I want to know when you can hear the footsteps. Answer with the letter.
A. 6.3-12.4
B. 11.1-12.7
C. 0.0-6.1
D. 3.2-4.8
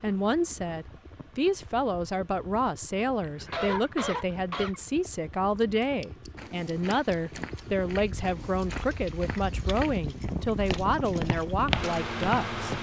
A.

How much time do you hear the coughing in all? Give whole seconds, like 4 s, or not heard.
2 s.